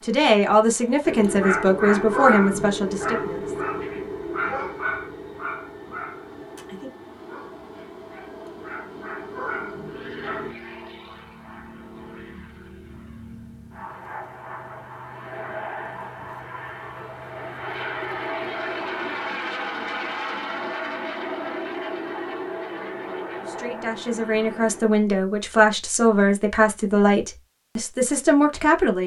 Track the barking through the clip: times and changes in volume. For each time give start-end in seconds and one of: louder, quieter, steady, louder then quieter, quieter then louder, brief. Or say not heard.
1.1-10.6 quieter then louder.